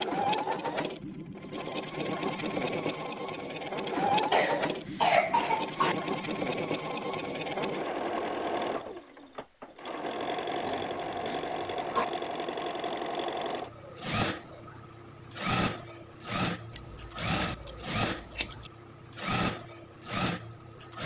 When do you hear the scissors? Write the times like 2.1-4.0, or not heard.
16.7-18.7.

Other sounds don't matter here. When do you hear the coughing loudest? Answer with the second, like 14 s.
5 s.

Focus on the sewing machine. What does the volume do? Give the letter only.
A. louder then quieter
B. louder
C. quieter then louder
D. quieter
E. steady
E.